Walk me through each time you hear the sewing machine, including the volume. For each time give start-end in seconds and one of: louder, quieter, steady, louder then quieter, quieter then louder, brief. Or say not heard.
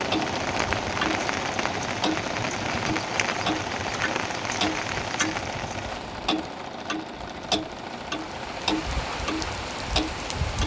0.0-10.6 quieter.